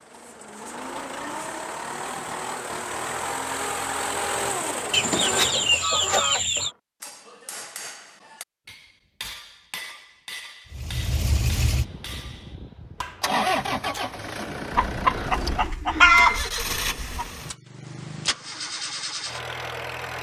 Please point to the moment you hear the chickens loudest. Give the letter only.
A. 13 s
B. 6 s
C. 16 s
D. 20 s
C.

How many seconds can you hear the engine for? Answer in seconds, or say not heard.
15 s.